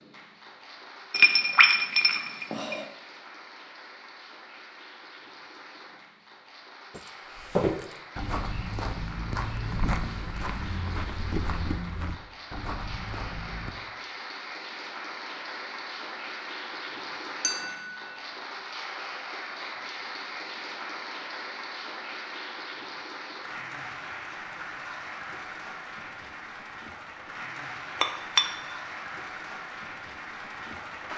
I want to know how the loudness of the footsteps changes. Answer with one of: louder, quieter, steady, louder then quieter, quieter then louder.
quieter.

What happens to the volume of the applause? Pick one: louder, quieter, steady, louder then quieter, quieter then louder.
louder.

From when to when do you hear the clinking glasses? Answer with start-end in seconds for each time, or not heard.
1.1-2.9, 17.4-18.0, 28.0-28.4.